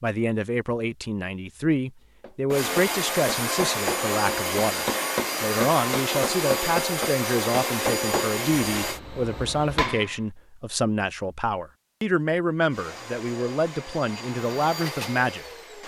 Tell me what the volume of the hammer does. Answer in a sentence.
The volume of the hammer goes down.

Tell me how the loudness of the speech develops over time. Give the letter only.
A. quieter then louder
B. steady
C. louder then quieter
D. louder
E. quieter
B.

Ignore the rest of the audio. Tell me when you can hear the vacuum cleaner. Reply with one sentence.
You can hear the vacuum cleaner from 2.5 to 9.0 s and from 12.7 to 15.8 s.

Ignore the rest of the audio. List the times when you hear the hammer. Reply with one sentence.
You can hear the hammer from 2.2 to 10.2 s.